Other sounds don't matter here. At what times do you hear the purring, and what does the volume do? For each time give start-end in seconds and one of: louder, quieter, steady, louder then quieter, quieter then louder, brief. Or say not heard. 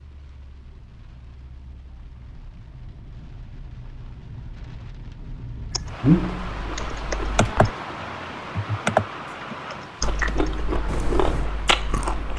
not heard.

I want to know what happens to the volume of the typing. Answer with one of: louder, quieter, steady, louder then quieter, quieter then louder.
louder then quieter.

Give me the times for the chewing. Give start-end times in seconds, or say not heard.
6.0-7.7, 10.0-12.3.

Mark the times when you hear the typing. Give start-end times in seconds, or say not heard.
5.7-11.4.